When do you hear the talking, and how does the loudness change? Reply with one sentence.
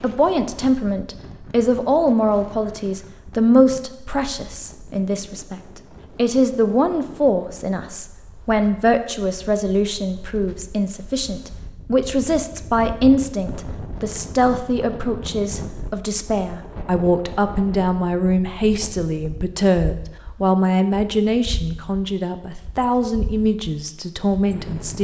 The talking can be heard from 0.0 to 24.9 s, at a steady volume.